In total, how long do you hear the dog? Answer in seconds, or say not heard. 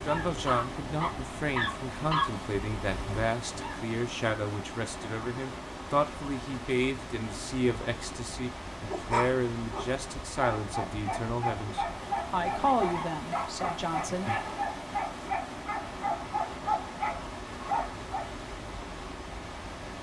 13 s.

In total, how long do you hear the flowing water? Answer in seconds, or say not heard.
20 s.